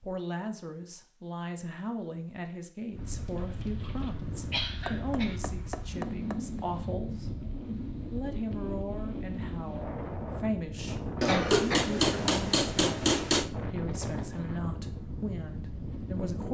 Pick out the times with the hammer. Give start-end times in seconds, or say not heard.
4.8-6.6, 11.4-13.5.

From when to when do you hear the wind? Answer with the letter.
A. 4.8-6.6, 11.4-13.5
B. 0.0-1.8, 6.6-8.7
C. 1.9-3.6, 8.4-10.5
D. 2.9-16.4
D.